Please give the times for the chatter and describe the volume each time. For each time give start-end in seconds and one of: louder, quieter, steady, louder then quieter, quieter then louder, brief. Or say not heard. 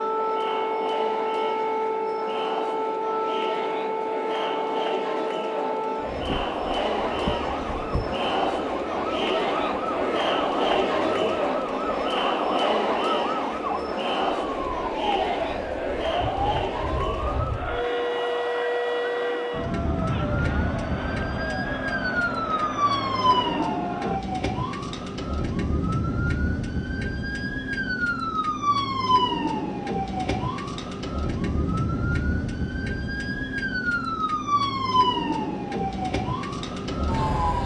0.0-24.2 louder then quieter.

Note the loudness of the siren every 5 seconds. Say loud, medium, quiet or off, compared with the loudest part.
loud, medium, medium, loud, loud, loud, loud, loud.